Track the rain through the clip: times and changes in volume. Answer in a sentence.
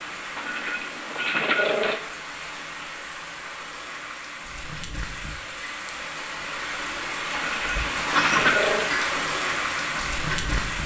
The rain can be heard from 0.0 to 10.8 s, getting louder.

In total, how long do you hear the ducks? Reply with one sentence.
The ducks can be heard for 3 seconds in total.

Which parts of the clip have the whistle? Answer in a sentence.
You can't hear the whistle here.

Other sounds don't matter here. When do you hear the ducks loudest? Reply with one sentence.
The loudest moment of the ducks is at 8 seconds.